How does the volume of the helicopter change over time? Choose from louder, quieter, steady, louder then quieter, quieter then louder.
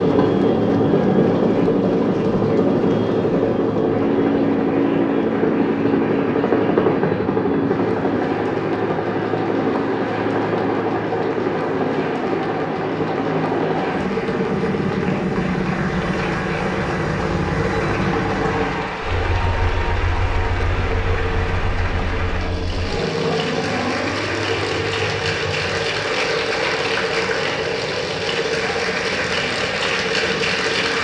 quieter.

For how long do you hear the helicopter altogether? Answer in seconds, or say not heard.
31 s.